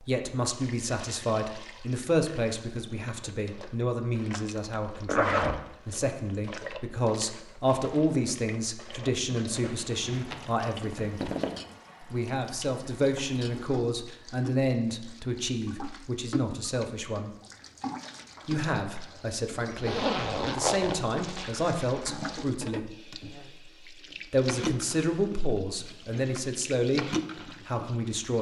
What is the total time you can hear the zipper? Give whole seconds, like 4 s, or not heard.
5 s.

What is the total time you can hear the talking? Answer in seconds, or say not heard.
25 s.